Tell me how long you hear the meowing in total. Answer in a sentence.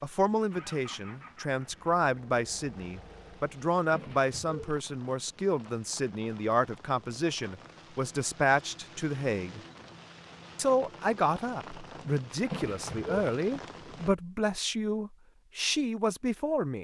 The meowing can be heard for 2 seconds in total.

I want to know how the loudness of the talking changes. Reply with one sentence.
The volume of the talking stays about the same.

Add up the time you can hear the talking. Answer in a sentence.
The talking can be heard for 16 seconds in total.